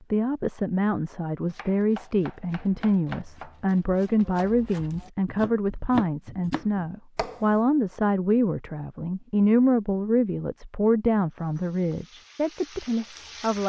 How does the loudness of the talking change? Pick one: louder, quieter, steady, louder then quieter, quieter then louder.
steady.